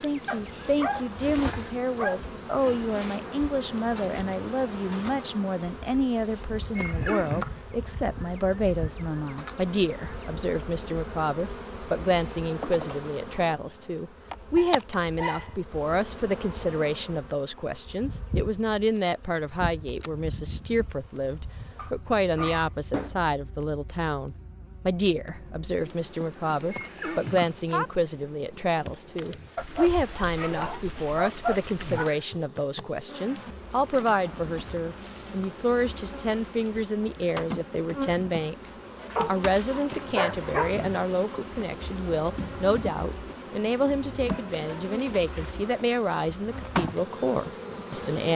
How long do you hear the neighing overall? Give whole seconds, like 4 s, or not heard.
2 s.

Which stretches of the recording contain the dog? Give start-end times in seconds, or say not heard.
0.2-2.2, 14.6-15.6, 21.8-23.1, 29.6-32.1, 39.1-40.8.